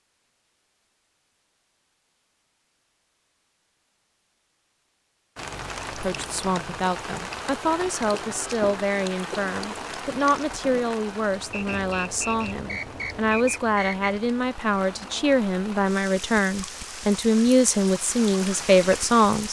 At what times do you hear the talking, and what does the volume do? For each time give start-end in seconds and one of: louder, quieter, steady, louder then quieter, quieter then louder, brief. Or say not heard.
5.9-19.4 louder.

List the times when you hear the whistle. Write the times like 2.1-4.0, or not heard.
11.5-14.0.